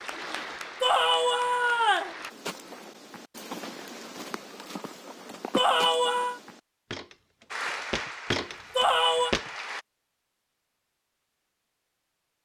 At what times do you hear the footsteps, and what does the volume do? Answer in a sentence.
You can hear the footsteps from 2.3 to 9.5 s, getting louder.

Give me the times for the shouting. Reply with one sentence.
The shouting can be heard from 0.8 to 2.1 s, from 5.5 to 6.4 s and from 8.8 to 9.3 s.